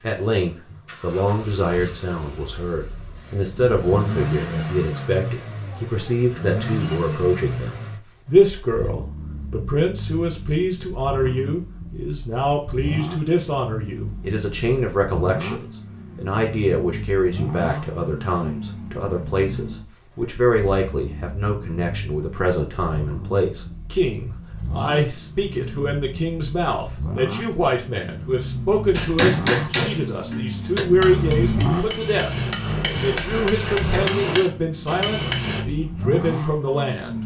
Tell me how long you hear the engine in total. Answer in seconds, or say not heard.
37 s.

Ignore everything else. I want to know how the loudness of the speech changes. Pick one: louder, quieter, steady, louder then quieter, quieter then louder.
steady.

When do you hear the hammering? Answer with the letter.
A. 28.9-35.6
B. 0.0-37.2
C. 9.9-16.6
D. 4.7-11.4
A.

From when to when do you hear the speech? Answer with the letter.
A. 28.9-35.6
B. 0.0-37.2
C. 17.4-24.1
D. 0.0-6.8
B.